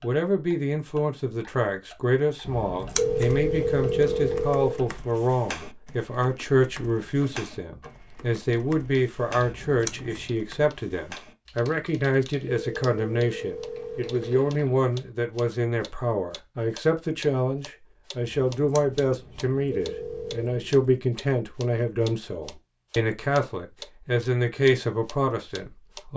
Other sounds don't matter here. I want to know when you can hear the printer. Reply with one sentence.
You can't hear the printer here.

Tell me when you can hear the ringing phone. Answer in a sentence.
The ringing phone can be heard from 3.0 to 4.8 s, from 12.5 to 14.4 s and from 19.7 to 20.6 s.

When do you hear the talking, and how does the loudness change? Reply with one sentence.
The talking can be heard from 0.0 to 26.1 s, at a steady volume.